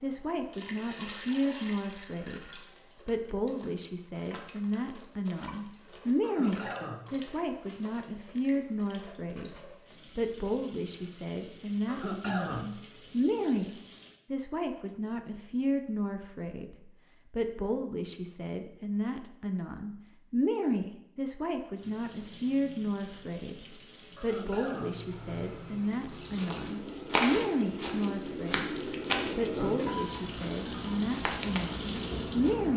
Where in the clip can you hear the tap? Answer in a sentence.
You can hear the tap from 0.0 to 14.2 s and from 21.8 to 32.7 s.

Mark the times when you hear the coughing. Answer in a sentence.
You can hear the coughing from 6.2 to 7.0 s, from 11.8 to 12.7 s and from 24.1 to 25.0 s.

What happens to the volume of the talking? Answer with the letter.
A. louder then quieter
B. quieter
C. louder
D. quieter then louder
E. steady
E.